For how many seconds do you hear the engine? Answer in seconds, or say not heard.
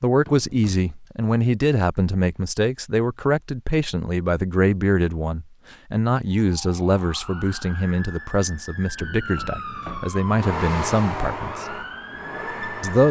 3 s.